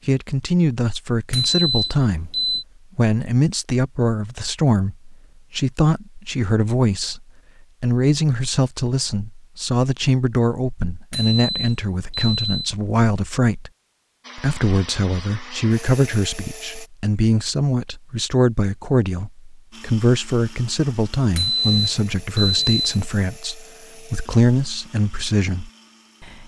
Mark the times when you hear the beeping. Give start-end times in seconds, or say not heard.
1.3-2.6, 11.1-12.7, 21.4-23.0.